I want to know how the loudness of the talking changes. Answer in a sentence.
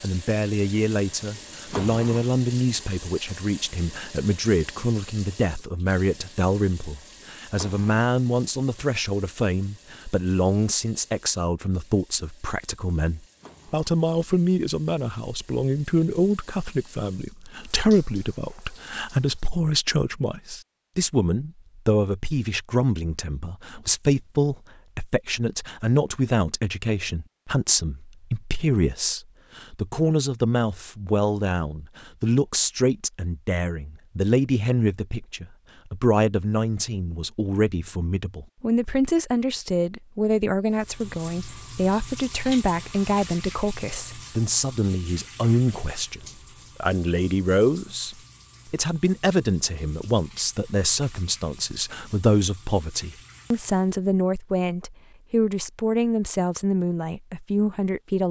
The volume of the talking stays about the same.